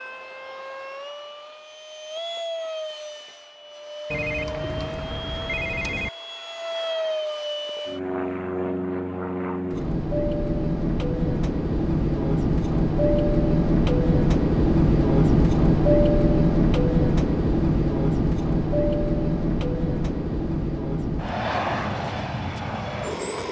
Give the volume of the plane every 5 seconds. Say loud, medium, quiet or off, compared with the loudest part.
quiet, medium, loud, loud, medium.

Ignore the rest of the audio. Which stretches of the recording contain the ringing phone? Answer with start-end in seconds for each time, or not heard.
4.1-6.1.